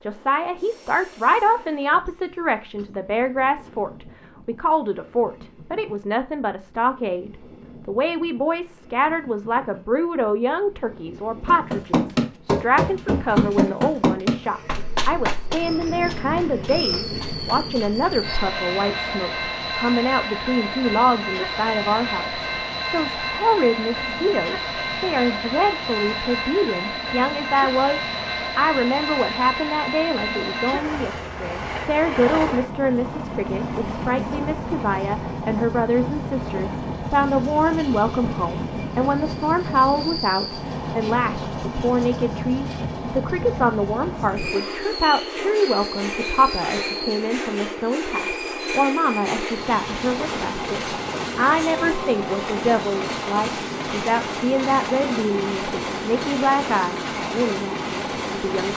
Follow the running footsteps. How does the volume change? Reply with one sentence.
The volume of the running footsteps goes down.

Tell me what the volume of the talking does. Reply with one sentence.
The volume of the talking stays about the same.